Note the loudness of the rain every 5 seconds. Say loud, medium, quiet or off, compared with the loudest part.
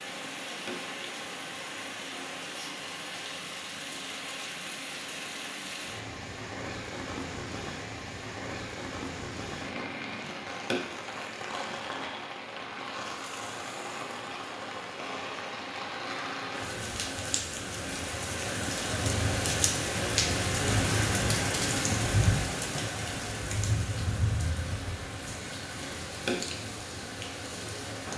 medium, medium, medium, loud, loud, medium.